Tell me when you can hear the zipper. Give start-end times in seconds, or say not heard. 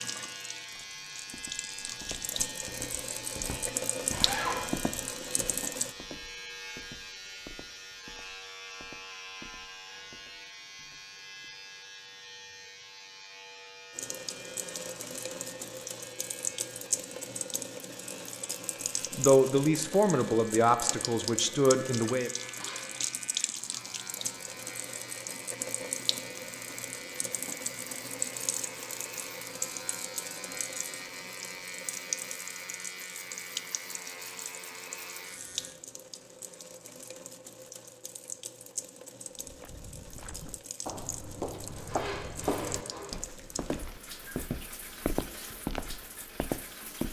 4.1-4.7, 22.4-23.1, 41.6-43.1.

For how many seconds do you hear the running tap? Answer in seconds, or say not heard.
39 s.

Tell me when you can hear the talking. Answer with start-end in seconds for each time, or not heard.
19.1-22.3.